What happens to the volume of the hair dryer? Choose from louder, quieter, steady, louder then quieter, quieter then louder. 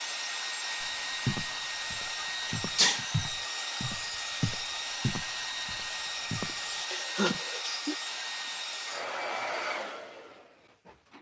steady.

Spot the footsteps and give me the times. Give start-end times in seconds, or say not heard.
0.8-6.5.